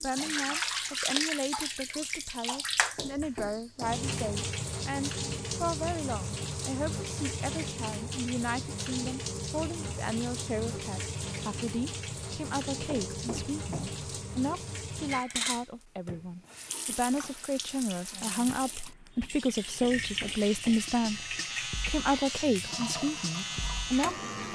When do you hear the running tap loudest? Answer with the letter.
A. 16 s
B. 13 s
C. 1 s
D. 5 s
C.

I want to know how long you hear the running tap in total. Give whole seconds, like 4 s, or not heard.
24 s.